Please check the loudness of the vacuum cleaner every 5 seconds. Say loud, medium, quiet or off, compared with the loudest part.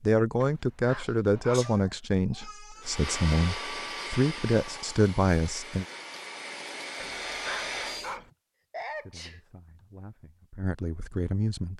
loud, loud, off.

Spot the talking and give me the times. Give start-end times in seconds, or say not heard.
0.0-5.8, 8.8-11.7.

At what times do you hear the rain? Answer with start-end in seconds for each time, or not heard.
not heard.